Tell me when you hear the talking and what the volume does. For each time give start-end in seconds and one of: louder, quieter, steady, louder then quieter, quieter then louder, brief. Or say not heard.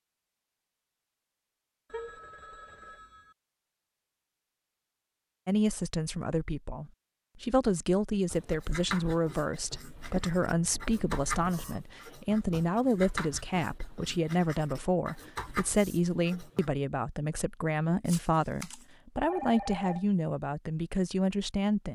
5.5-21.9 steady.